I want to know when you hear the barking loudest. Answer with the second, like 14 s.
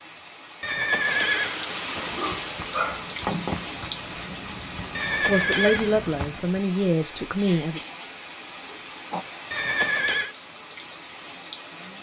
3 s.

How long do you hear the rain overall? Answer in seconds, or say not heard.
12 s.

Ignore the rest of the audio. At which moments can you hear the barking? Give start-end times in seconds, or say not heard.
1.9-3.6, 7.5-9.3.